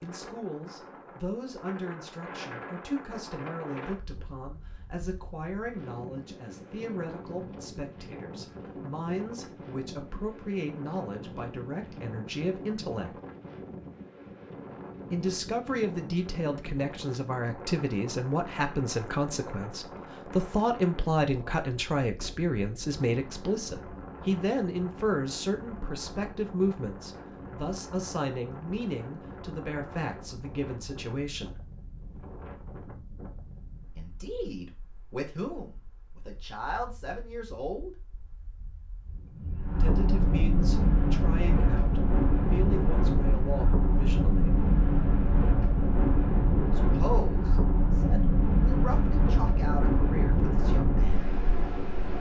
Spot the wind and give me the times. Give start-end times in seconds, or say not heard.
0.0-52.1.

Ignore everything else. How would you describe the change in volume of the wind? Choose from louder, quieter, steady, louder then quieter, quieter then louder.
louder.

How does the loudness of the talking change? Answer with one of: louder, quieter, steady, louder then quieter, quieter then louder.
louder then quieter.